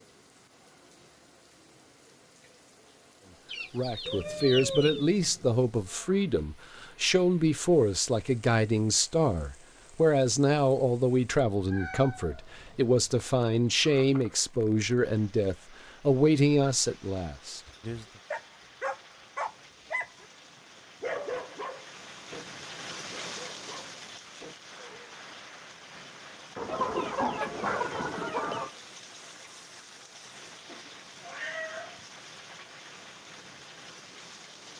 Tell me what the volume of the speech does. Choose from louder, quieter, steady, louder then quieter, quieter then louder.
steady.